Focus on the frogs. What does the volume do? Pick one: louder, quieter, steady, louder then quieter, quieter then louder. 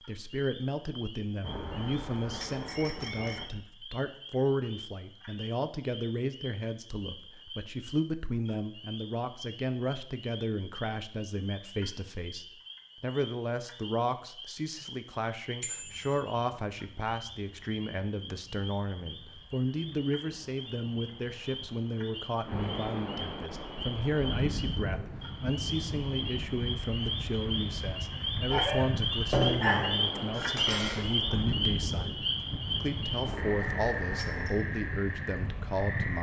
louder.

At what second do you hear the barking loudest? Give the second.
30 s.